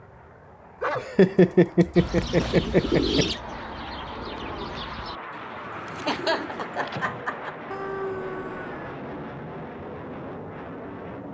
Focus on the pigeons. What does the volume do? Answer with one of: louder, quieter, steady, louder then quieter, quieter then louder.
quieter then louder.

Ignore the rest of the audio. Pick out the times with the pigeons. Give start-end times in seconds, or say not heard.
1.9-7.2.